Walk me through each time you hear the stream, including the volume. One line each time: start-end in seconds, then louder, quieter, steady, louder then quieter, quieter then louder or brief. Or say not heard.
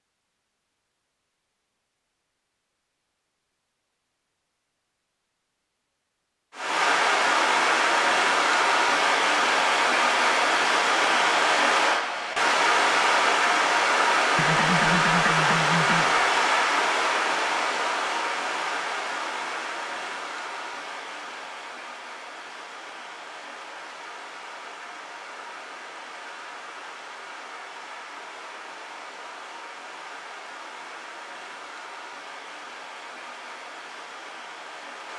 6.5-35.1 quieter.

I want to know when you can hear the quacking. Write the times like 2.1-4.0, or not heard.
14.3-16.2.